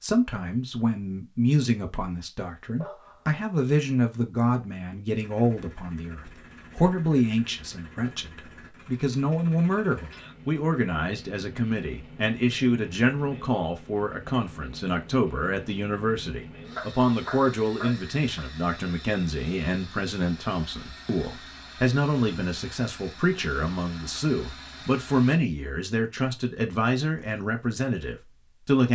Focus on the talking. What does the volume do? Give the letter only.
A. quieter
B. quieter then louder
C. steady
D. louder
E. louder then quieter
C.